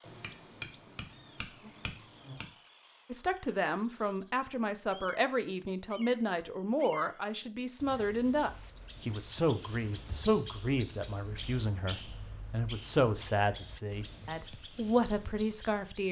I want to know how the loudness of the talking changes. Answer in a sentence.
The loudness of the talking stays about the same.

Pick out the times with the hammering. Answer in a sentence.
You can hear the hammering from 0.1 to 2.5 s.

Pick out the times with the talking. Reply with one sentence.
You can hear the talking from 3.1 to 16.0 s.